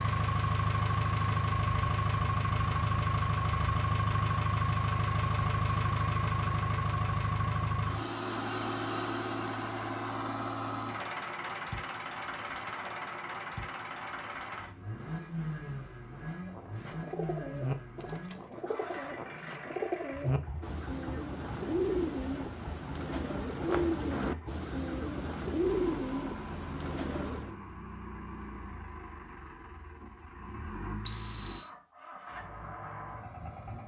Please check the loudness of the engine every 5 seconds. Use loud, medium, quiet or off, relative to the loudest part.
loud, loud, medium, medium, quiet, quiet, quiet.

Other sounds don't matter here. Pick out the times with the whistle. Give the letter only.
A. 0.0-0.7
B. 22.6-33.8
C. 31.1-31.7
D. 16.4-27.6
C.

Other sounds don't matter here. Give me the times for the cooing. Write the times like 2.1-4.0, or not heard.
16.4-27.6.